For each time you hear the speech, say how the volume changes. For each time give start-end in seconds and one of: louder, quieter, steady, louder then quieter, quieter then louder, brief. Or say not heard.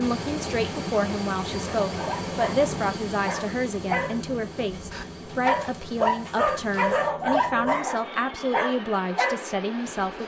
0.0-10.2 steady.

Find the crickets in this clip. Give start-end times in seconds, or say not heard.
0.0-7.1.